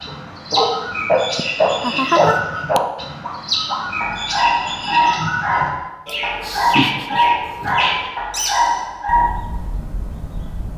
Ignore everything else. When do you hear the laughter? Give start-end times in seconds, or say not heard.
1.4-2.8, 6.0-7.8.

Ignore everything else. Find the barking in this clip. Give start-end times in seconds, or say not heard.
0.1-9.3.